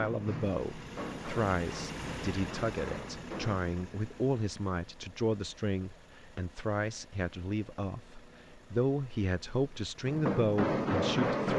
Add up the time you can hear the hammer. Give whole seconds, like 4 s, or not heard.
5 s.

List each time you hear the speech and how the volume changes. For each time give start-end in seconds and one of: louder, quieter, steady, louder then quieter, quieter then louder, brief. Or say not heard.
0.0-11.5 steady.